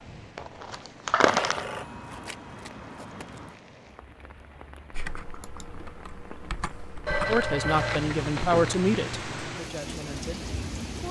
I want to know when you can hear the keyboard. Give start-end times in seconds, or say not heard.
4.9-7.5.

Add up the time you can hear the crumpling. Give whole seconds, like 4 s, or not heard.
3 s.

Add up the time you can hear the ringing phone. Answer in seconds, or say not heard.
4 s.